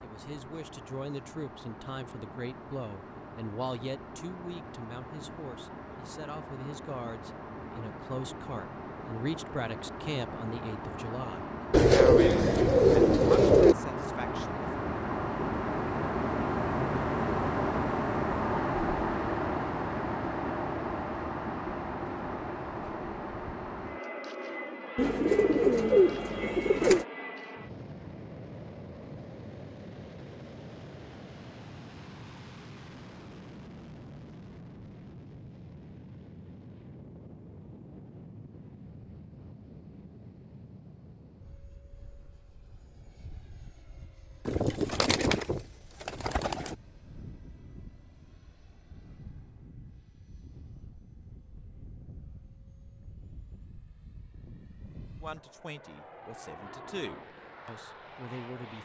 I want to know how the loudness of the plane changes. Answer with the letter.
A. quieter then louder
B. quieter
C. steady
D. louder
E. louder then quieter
E.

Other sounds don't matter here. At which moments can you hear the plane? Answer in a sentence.
The plane can be heard from 0.0 to 58.7 s.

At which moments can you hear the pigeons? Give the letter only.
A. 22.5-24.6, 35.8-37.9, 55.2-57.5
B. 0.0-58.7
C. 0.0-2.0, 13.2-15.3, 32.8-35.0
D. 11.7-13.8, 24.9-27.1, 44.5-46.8
D.